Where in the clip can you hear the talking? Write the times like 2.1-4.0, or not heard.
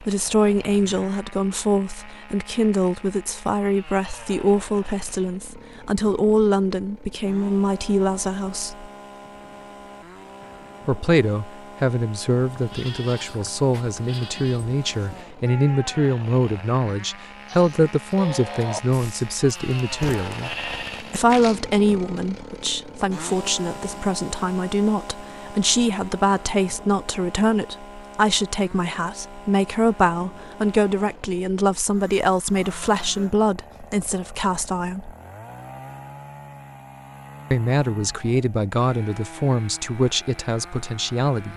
0.0-8.9, 10.8-20.5, 21.1-35.1, 37.5-41.5.